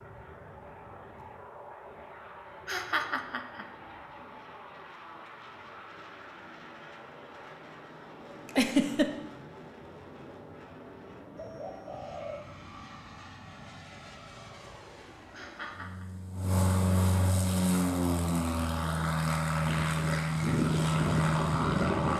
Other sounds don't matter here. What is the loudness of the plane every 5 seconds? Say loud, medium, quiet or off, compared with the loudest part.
quiet, quiet, quiet, loud, loud.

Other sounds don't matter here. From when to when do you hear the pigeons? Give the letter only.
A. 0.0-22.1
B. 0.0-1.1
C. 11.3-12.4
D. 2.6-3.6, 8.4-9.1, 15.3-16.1
C.